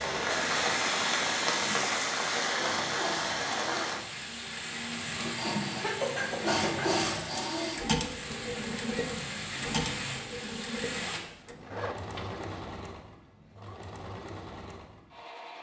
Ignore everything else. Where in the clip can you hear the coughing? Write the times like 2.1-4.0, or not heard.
5.8-7.0.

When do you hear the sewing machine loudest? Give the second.
7 s.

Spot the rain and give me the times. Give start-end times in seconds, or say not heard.
0.0-11.2.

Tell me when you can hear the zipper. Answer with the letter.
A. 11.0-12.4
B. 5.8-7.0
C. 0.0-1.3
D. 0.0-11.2
A.